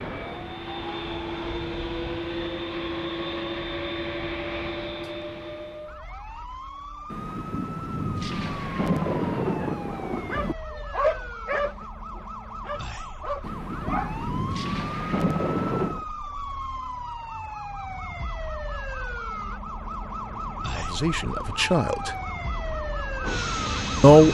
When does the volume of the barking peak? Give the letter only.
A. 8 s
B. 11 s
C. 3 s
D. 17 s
B.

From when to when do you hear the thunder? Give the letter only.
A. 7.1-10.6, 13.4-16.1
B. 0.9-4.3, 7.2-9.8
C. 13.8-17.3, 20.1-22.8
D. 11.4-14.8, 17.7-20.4
A.